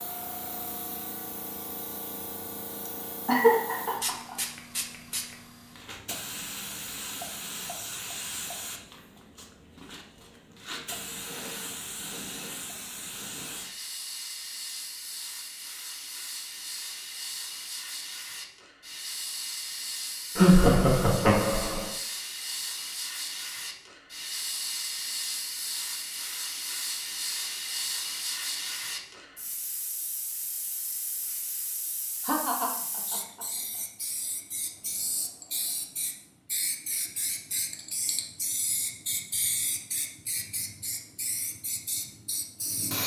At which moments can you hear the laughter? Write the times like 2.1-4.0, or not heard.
3.2-4.3, 20.4-21.9, 32.2-33.5.